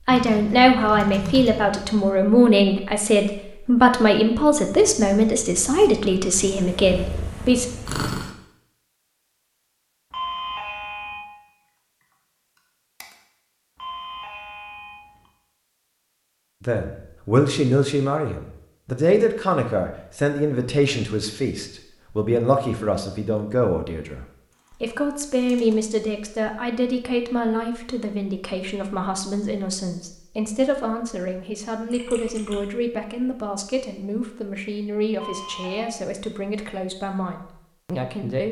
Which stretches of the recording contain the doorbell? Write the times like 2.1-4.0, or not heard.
10.1-11.2, 13.8-15.3, 35.1-35.9.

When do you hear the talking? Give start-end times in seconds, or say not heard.
0.1-7.7, 16.6-38.4.